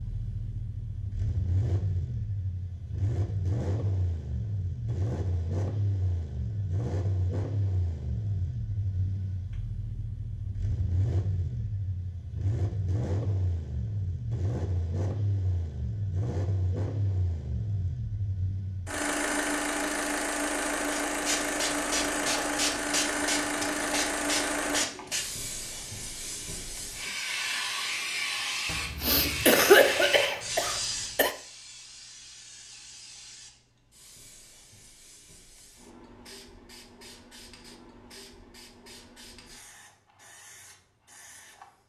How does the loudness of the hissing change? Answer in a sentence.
The volume of the hissing goes down.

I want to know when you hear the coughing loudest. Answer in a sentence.
The loudest moment of the coughing is at 30 seconds.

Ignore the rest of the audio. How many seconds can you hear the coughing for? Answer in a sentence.
You can hear the coughing for 3 seconds altogether.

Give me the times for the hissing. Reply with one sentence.
The hissing can be heard from 20.9 to 41.8 s.